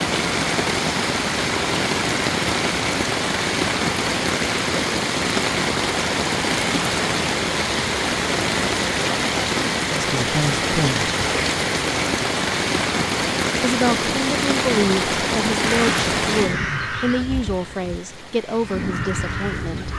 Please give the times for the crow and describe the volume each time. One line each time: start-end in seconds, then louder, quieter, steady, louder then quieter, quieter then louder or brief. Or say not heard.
15.6-19.9 quieter then louder.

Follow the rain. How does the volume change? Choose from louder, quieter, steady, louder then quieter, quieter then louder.
quieter.